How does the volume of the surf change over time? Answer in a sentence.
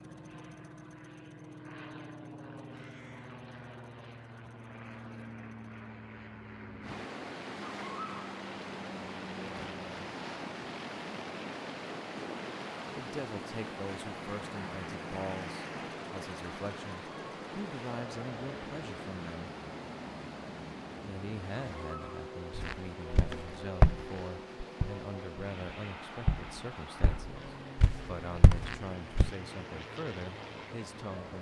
The volume of the surf goes down.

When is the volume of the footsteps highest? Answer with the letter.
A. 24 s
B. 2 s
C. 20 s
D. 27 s
A.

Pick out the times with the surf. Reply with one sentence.
The surf can be heard from 6.8 to 31.3 s.